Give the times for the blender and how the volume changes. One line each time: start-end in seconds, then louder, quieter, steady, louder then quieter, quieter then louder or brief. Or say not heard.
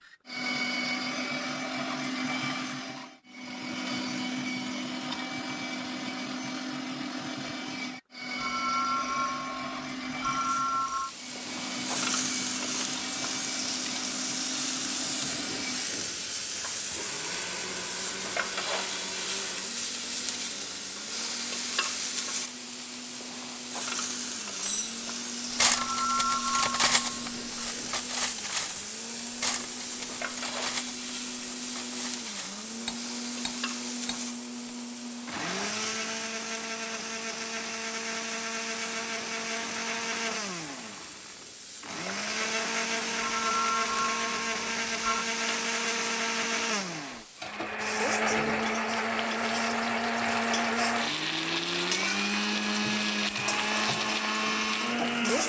0.0-55.4 quieter then louder.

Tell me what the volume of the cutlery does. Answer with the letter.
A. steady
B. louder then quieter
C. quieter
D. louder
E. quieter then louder
C.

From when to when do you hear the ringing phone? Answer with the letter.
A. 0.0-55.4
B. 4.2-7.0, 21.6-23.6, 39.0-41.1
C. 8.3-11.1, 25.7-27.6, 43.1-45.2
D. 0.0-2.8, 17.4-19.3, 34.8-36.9
C.